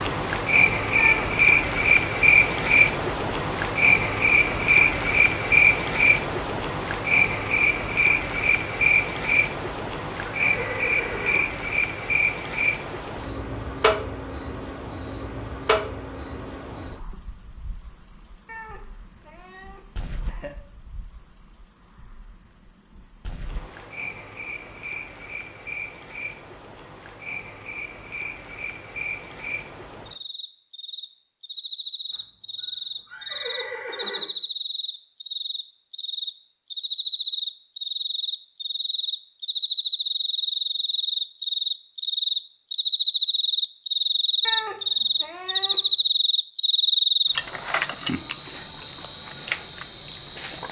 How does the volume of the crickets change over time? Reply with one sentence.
The volume of the crickets goes down, then up.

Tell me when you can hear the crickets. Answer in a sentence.
The crickets can be heard from 0.0 to 50.6 s.